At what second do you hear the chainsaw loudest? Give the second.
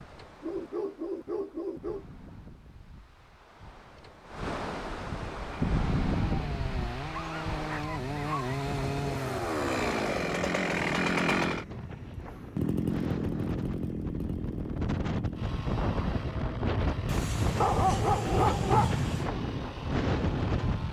11 s.